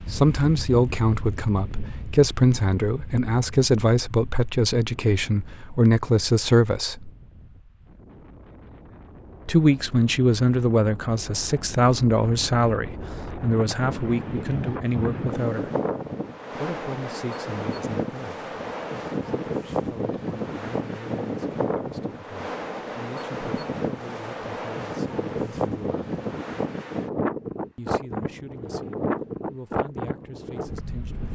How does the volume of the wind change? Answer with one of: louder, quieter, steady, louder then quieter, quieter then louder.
louder.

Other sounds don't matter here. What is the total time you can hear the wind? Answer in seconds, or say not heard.
31 s.